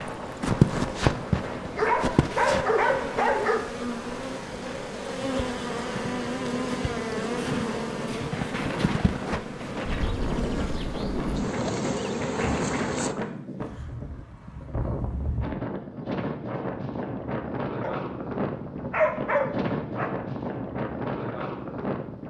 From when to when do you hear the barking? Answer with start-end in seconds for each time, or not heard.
1.8-3.6, 17.8-20.1.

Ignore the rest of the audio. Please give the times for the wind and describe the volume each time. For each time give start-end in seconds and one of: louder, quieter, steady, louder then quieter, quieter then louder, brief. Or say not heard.
0.0-22.2 louder.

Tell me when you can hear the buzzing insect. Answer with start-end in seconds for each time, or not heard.
0.0-13.2.